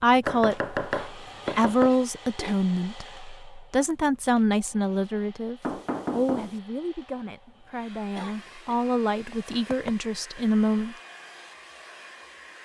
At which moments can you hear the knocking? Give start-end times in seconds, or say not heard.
0.2-1.9, 5.6-6.6, 9.3-10.4.